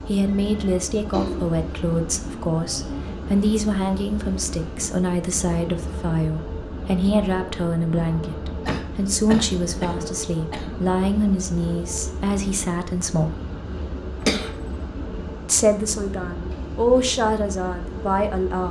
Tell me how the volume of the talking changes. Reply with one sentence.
The volume of the talking stays about the same.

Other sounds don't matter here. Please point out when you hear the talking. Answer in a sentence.
The talking can be heard from 0.1 to 13.4 s and from 15.4 to 18.6 s.